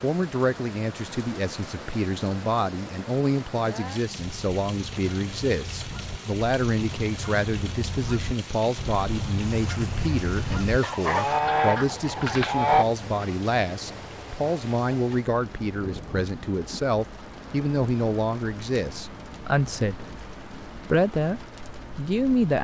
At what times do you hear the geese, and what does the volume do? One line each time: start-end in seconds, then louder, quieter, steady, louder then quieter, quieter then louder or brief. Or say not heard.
4.2-12.8 louder.